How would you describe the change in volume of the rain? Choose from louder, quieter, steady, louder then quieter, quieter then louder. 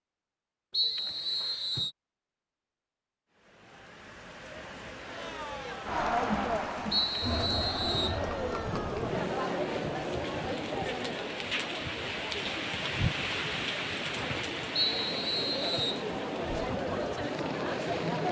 louder then quieter.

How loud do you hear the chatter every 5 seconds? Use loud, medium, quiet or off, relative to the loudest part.
off, loud, medium, loud.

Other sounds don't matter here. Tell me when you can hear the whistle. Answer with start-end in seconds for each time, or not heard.
0.7-1.9, 6.9-8.2, 14.8-16.1.